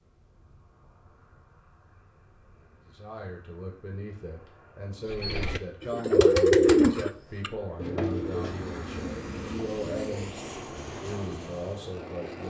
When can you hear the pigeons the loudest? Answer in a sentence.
The loudest moment of the pigeons is at 7 seconds.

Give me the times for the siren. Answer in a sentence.
You can't hear the siren here.